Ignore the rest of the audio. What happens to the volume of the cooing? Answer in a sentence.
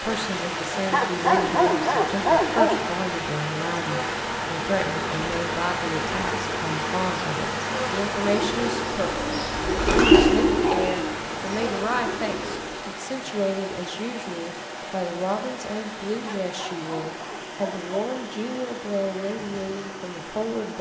The volume of the cooing goes up, then down.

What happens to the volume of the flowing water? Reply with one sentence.
The loudness of the flowing water goes down.